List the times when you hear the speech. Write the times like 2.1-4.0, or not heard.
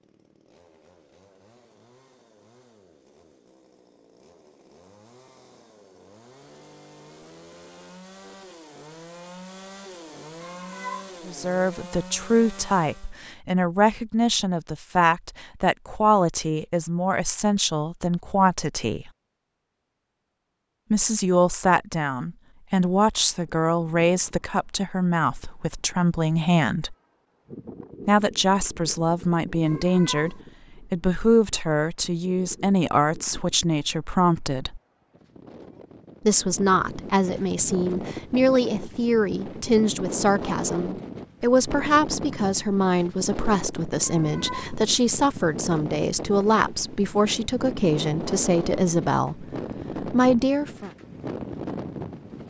11.2-19.1, 20.9-26.9, 28.1-34.8, 36.2-50.9.